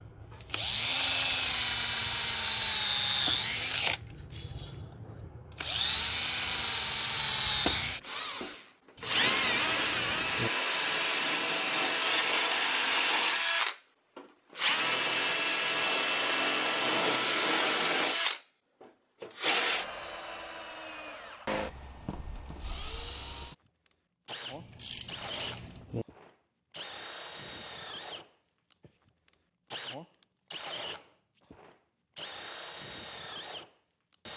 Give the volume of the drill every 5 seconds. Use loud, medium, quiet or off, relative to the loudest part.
loud, loud, loud, loud, quiet, quiet, quiet.